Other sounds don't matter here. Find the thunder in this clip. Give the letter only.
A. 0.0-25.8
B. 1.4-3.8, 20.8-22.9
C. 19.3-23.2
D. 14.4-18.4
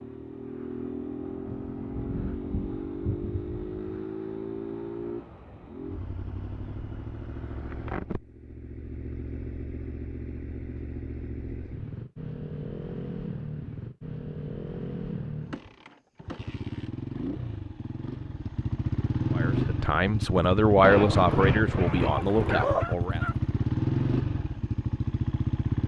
B.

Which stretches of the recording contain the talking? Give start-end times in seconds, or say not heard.
19.3-23.2.